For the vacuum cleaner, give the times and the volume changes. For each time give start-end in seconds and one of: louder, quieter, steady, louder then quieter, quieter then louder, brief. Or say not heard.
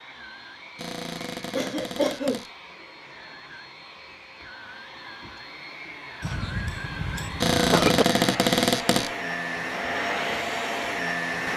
0.0-11.5 louder.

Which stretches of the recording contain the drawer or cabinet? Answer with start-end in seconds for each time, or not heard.
0.8-2.5, 7.4-9.1.